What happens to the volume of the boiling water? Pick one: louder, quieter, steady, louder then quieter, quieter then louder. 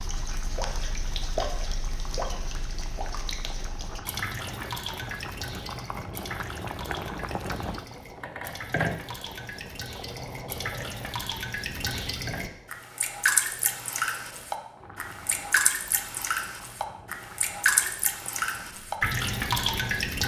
louder then quieter.